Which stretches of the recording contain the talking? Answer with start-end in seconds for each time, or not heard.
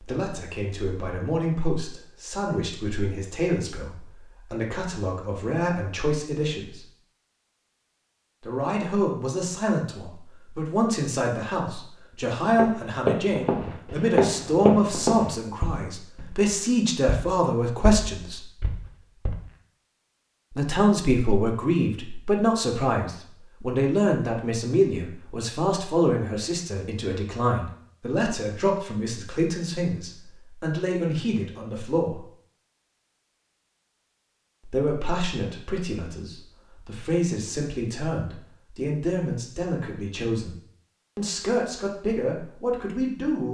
0.0-6.8, 8.4-18.4, 20.6-32.2, 34.6-40.5, 41.1-43.4.